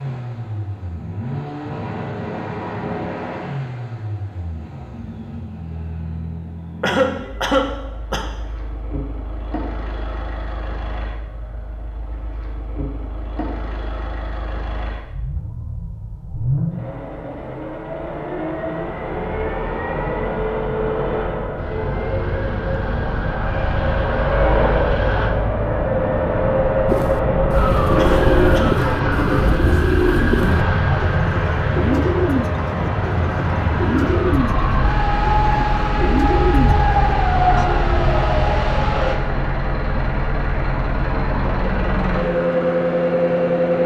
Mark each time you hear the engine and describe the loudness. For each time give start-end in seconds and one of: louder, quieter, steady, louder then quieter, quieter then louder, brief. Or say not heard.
0.0-43.8 louder.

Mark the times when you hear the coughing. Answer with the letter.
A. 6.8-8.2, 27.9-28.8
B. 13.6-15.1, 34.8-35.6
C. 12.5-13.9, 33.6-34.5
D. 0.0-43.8
A.